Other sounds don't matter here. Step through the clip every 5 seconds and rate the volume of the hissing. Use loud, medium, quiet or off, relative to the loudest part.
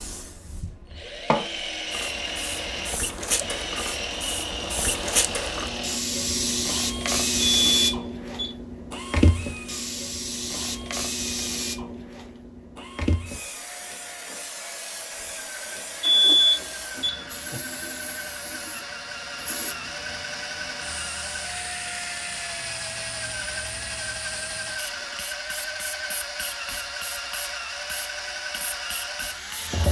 medium, loud, medium, quiet, quiet, quiet.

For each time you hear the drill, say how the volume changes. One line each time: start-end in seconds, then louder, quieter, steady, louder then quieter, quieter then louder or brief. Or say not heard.
0.0-29.8 quieter then louder.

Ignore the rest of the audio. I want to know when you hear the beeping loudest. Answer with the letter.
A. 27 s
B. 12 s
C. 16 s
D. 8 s
C.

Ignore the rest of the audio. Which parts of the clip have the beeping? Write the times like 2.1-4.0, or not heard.
7.5-8.6, 16.0-17.6.